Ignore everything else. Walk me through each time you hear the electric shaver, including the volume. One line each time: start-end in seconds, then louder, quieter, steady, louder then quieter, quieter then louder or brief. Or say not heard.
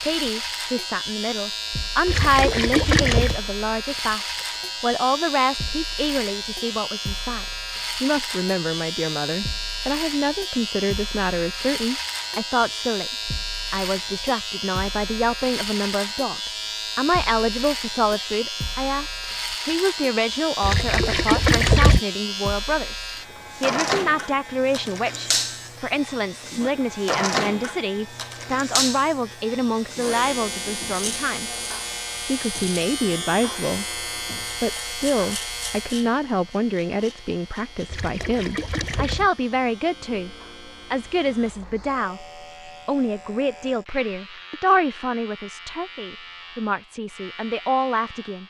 0.0-48.4 quieter.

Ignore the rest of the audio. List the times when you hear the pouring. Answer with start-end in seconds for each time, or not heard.
2.0-3.4, 20.6-22.0, 37.9-39.3.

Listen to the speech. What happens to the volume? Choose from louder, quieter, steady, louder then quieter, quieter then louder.
steady.